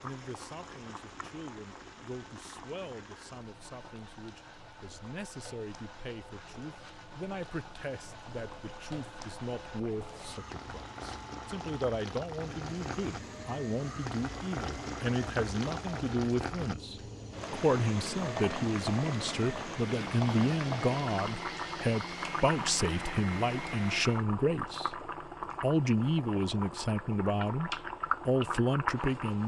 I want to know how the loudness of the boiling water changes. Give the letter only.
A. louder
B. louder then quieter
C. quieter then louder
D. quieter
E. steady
A.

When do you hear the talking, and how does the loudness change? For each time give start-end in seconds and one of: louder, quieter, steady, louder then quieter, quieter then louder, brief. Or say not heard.
0.0-29.4 louder.